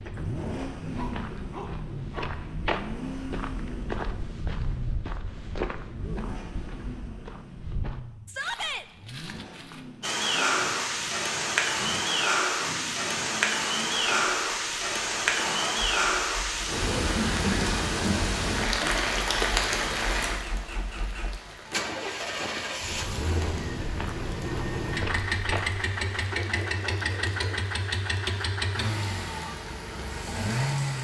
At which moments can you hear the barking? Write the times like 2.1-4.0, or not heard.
0.9-2.4, 26.2-27.7.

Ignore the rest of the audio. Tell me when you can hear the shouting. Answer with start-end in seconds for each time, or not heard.
8.2-8.8.